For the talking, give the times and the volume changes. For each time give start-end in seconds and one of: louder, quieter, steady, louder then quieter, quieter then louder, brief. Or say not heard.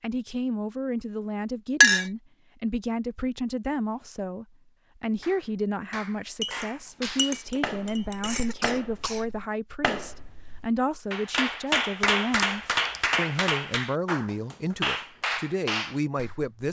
0.0-16.6 steady.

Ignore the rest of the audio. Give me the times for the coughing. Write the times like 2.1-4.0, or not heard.
8.2-9.3.